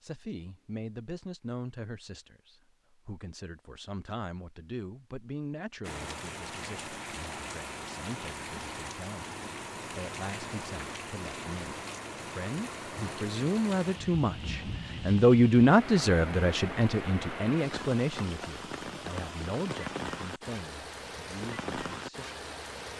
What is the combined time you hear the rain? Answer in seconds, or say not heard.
17 s.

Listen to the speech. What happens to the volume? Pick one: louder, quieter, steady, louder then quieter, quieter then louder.
louder then quieter.